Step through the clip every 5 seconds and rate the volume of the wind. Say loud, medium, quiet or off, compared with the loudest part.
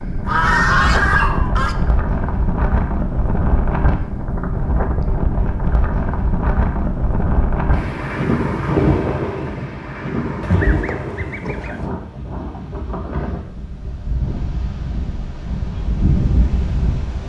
loud, loud, medium, loud.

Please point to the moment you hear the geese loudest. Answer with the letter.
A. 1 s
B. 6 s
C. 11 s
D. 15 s
A.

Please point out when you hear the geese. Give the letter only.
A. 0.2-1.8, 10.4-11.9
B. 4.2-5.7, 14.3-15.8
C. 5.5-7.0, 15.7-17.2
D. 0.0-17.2
A.